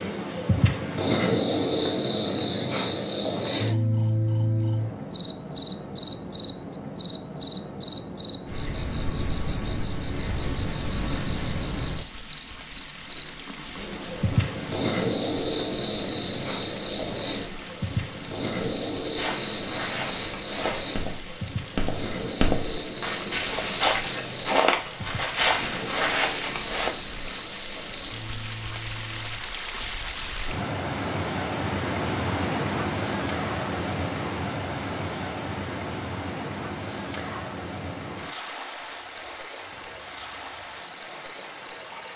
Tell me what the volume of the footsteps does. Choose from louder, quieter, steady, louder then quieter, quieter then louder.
louder.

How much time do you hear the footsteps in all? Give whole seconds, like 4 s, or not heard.
8 s.